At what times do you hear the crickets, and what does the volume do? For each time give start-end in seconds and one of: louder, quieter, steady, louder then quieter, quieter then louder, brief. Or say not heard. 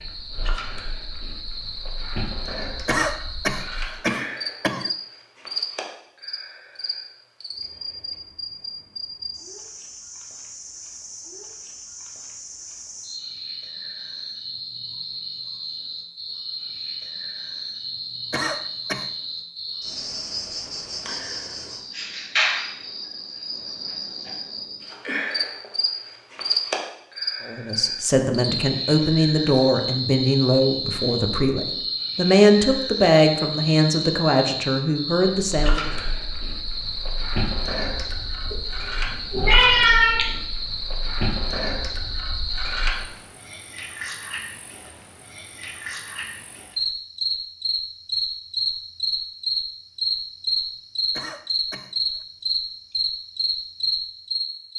0.0-54.7 louder.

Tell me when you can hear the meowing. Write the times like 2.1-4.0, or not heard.
38.4-40.3.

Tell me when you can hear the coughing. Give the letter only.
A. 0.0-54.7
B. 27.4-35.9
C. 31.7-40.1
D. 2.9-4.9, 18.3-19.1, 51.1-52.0
D.